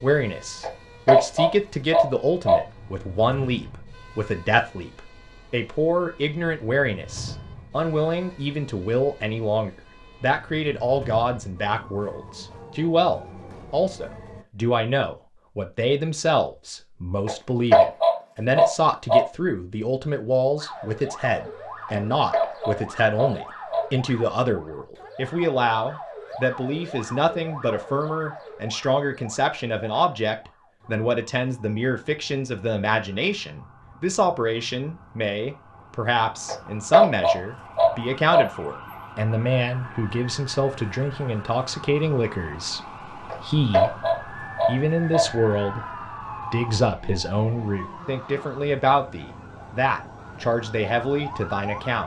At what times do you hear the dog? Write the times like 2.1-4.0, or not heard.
0.6-2.6, 17.2-19.2, 21.9-23.9, 36.5-38.5, 43.2-45.2.